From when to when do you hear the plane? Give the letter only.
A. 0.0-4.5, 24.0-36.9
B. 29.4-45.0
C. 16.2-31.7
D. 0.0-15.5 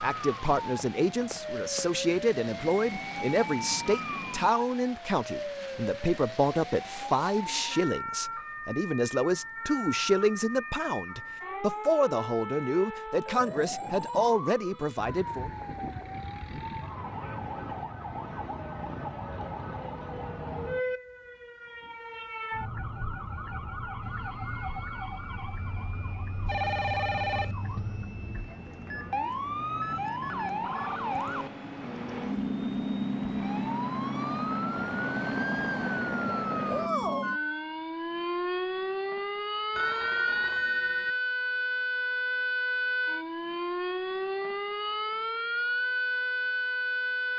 A.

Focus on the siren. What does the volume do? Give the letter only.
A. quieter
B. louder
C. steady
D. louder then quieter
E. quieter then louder
B.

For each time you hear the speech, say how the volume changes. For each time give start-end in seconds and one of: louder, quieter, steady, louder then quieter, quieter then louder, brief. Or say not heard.
0.0-15.5 steady.